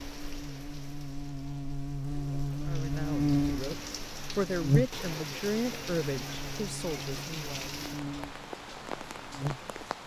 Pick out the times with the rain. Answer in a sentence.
You can hear the rain from 0.0 to 10.0 s.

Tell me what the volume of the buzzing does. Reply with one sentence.
The volume of the buzzing goes up, then down.